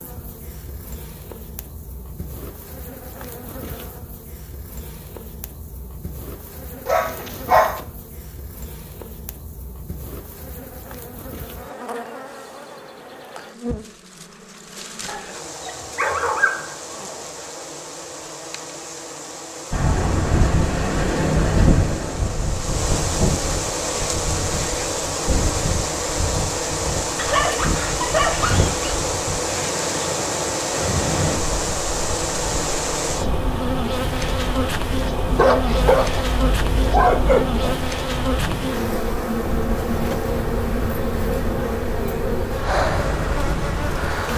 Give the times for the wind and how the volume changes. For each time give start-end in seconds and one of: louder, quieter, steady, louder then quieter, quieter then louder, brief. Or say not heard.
19.7-44.3 quieter.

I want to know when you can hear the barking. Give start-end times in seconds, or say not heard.
6.8-7.8, 15.1-17.3, 27.1-28.9, 35.2-37.6.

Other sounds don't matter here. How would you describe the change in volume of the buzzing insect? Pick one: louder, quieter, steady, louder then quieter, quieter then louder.
louder.